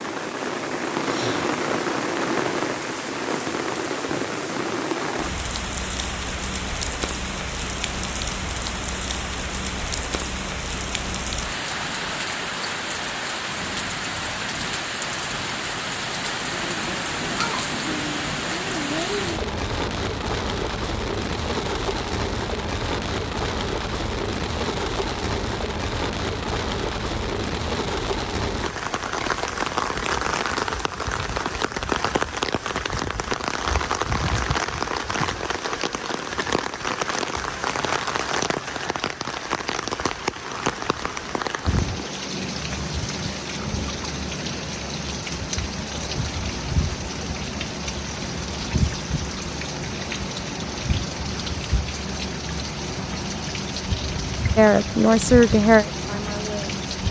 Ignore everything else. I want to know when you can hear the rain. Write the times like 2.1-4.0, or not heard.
0.0-57.0.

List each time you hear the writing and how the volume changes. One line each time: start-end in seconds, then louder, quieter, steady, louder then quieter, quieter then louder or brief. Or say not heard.
not heard.